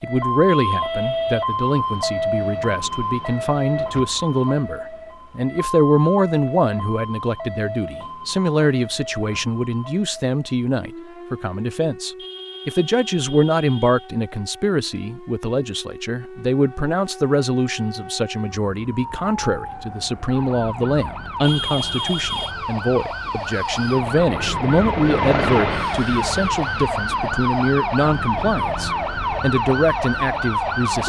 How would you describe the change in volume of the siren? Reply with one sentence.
The loudness of the siren goes down, then up.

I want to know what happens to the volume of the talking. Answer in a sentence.
The loudness of the talking stays about the same.